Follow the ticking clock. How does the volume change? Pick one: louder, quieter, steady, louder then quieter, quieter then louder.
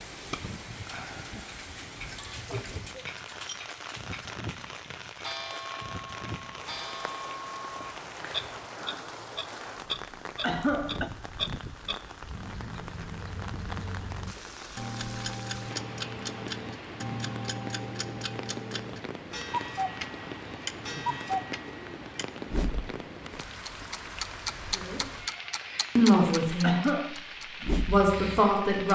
louder.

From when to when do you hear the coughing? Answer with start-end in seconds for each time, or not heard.
10.4-11.1, 26.6-27.1.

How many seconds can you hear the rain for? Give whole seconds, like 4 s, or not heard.
29 s.